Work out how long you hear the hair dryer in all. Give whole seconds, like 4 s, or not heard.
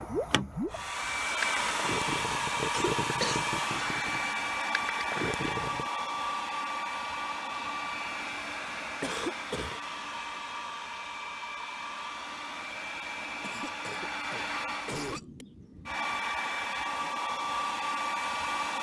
19 s.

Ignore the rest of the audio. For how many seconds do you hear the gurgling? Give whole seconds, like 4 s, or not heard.
6 s.